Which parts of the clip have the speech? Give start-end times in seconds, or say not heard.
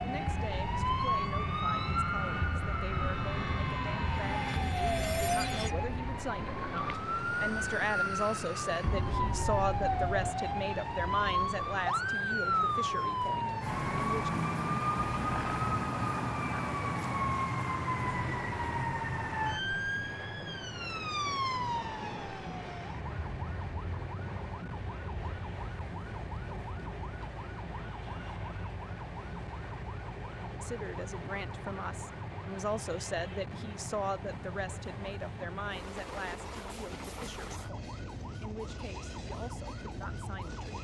0.0-14.3, 30.6-40.8.